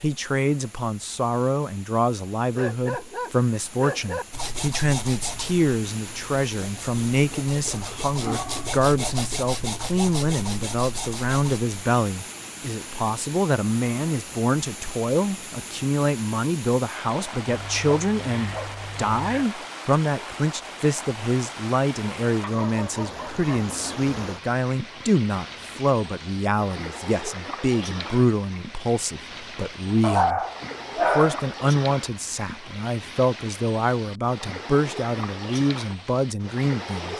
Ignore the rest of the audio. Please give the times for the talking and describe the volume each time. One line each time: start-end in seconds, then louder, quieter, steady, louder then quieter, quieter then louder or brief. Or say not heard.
0.0-30.4 steady
31.1-37.1 steady.